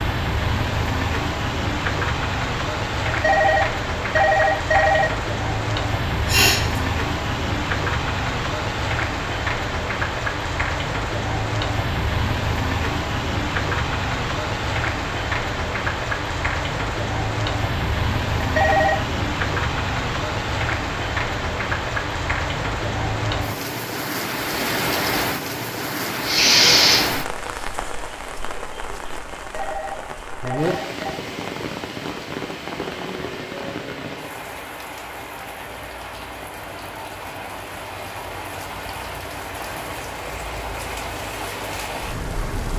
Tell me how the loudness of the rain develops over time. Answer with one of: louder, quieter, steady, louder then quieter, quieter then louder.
quieter.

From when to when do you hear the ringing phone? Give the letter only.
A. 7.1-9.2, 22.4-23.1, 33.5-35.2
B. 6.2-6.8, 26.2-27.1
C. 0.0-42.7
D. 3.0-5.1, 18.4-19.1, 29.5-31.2
D.